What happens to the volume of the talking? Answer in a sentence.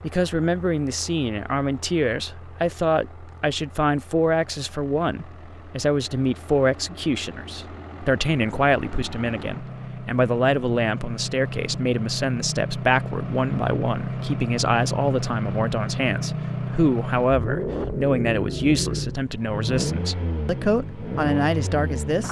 The volume of the talking stays about the same.